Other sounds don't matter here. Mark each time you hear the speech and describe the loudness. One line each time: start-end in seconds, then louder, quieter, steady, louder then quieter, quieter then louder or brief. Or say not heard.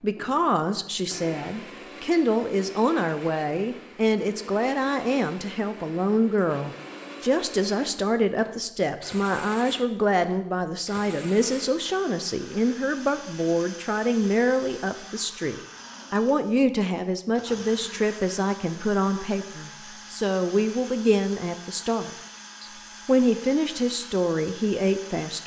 0.0-25.4 steady.